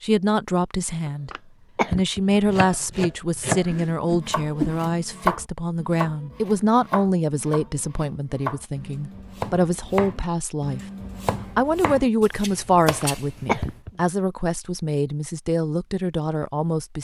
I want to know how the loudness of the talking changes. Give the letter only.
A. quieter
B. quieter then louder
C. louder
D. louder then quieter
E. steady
E.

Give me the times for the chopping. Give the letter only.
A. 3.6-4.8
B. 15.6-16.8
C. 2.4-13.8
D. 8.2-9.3
C.